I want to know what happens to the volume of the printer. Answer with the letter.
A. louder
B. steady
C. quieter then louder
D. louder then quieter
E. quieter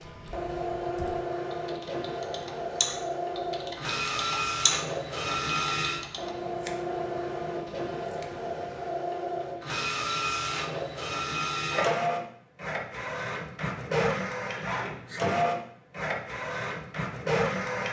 B.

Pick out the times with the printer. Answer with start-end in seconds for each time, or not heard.
0.0-17.8.